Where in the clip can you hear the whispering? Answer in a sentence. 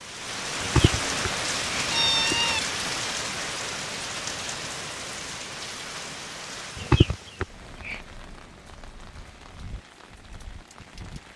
The whispering can't be heard in this clip.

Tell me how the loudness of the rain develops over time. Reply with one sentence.
The volume of the rain goes down.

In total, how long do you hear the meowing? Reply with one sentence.
You can hear the meowing for 3 seconds altogether.